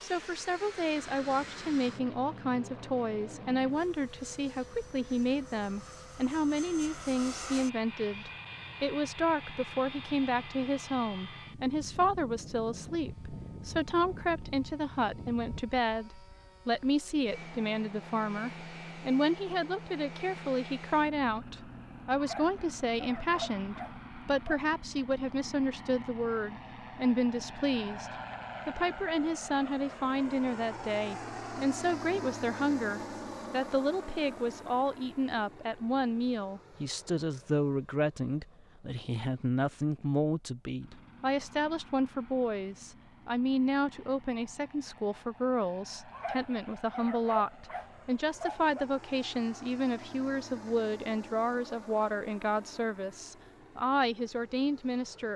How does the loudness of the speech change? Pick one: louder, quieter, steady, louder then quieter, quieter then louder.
steady.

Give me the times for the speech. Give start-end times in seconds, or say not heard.
0.0-28.1, 28.6-55.3.